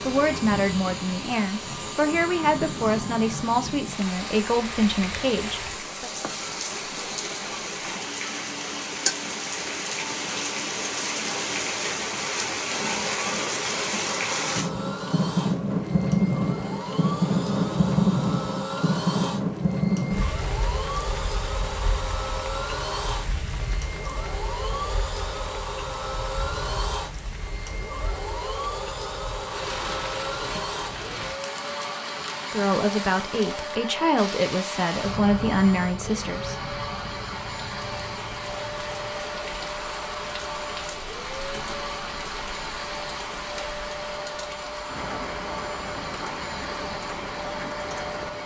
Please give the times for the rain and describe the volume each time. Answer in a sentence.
You can hear the rain from 0.0 to 48.4 s, getting louder then quieter.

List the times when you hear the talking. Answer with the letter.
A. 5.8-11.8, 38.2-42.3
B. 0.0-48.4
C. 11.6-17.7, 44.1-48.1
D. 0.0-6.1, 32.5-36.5
D.